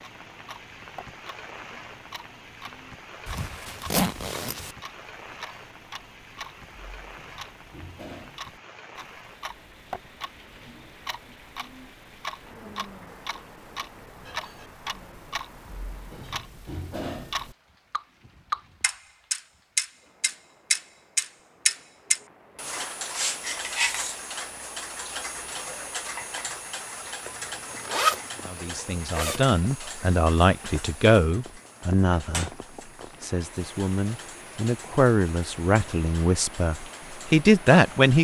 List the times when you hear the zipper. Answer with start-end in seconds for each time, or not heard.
3.2-4.8, 27.2-29.4.